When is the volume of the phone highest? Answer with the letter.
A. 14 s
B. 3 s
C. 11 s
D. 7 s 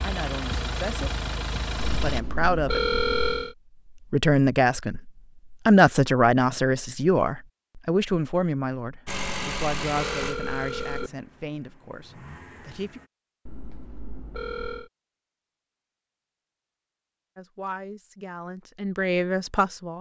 B.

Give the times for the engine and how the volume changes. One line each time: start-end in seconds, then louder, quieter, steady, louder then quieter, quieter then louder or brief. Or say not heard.
0.0-2.2 brief
9.1-13.1 quieter then louder.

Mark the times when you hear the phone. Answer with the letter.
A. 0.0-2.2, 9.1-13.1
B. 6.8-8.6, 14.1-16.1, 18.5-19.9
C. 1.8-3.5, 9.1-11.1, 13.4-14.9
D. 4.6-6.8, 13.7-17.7
C.